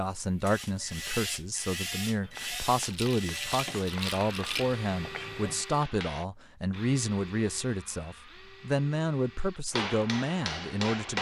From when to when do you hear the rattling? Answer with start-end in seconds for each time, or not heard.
2.8-4.8.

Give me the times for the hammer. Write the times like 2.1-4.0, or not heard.
2.2-6.2, 9.7-11.1.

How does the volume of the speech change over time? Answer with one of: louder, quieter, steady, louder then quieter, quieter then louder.
steady.